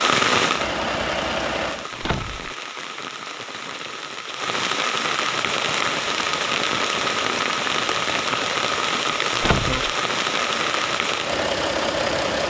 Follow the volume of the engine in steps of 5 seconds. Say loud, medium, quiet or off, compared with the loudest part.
loud, medium, loud.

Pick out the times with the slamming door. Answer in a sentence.
You can hear the slamming door from 1.9 to 2.5 s and from 9.3 to 9.8 s.